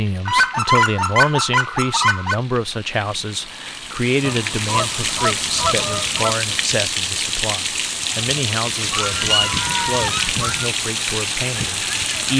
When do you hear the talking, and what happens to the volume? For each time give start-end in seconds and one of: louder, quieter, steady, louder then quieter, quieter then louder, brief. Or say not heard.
0.0-12.3 quieter.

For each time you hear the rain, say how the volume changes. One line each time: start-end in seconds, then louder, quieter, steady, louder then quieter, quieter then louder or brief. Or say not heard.
0.0-12.3 louder.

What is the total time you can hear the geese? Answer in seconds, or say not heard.
6 s.